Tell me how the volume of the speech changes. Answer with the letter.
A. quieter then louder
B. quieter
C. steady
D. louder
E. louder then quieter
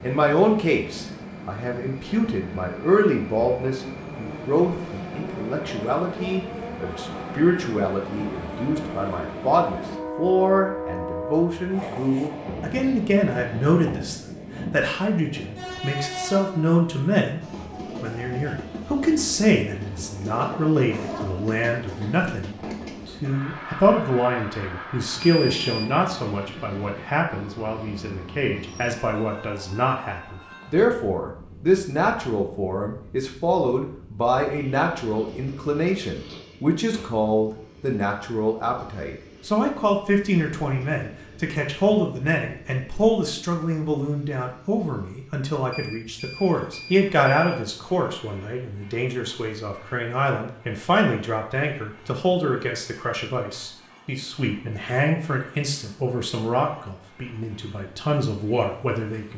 C.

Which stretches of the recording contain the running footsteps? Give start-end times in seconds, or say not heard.
not heard.